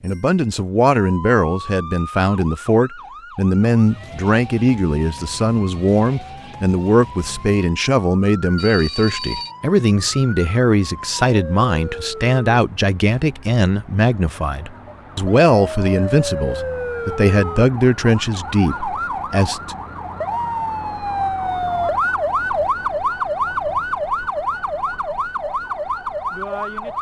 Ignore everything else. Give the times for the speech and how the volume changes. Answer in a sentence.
You can hear the speech from 0.0 to 19.8 s, at a steady volume.